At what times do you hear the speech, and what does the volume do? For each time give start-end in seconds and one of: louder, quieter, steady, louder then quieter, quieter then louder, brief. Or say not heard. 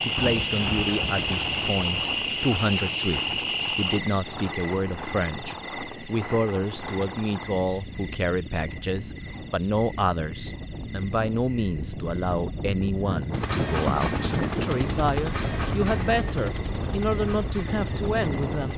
0.1-18.7 steady.